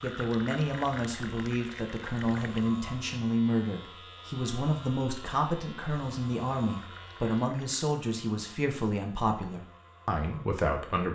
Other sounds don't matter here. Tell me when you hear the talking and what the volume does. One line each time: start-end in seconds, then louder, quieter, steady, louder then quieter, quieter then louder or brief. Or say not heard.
0.0-11.0 steady.